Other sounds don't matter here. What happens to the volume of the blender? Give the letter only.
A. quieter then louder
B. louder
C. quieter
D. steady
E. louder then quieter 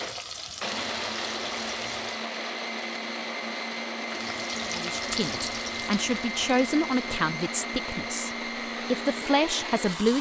D.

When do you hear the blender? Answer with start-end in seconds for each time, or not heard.
0.0-10.1.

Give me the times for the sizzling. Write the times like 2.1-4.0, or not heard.
0.0-2.2, 4.0-7.0.